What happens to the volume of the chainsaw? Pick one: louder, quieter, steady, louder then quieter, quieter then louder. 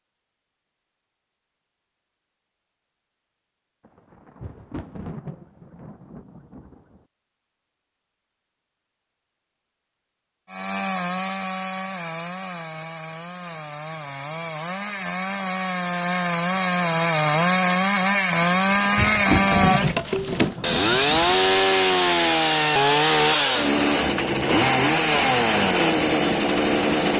louder.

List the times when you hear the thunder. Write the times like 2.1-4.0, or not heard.
3.8-7.0, 18.4-21.6.